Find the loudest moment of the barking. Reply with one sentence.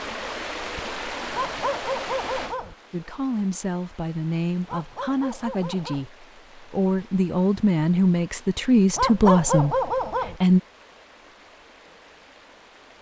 The loudest moment of the barking is at 9 seconds.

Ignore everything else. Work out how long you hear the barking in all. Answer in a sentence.
You can hear the barking for 4 seconds altogether.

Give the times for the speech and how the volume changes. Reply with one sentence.
The speech can be heard from 2.9 to 10.6 s, getting louder.